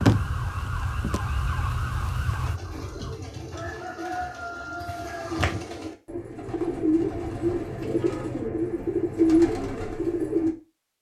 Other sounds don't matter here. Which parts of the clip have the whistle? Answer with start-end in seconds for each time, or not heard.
not heard.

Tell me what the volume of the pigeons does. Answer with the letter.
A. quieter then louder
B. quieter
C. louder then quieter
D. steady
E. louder
E.